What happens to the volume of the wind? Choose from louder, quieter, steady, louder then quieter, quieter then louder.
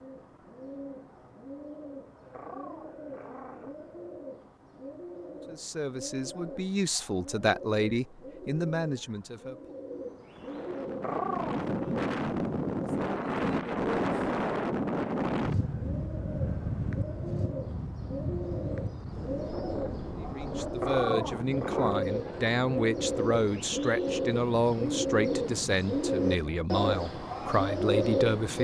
quieter.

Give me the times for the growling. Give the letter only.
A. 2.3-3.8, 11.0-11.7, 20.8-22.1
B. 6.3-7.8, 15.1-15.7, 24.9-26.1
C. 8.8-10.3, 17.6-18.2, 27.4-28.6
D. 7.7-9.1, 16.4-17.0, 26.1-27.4
A.